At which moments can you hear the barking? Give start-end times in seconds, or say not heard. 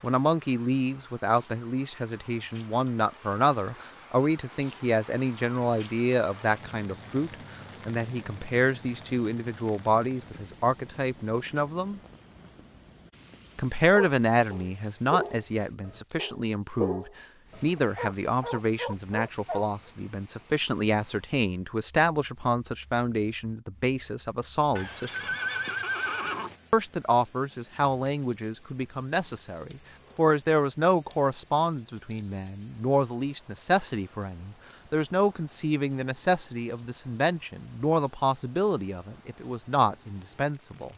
13.9-19.6.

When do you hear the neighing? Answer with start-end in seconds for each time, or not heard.
24.8-26.6.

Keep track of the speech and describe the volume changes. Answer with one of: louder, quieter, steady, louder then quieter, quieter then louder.
steady.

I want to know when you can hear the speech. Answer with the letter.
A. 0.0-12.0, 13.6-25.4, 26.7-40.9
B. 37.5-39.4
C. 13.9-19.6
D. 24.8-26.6
A.